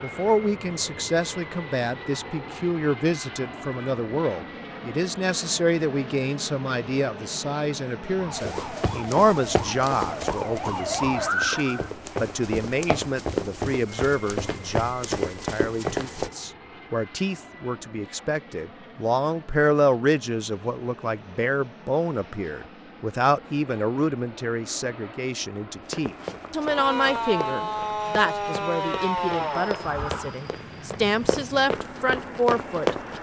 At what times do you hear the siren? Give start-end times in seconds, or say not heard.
8.1-11.9, 26.6-30.4.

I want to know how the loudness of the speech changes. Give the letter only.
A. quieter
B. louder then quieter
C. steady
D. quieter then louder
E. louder
C.